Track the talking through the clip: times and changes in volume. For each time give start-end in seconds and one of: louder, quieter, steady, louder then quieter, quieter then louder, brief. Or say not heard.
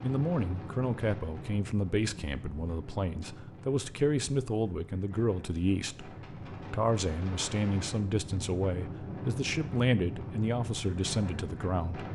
0.0-12.1 steady.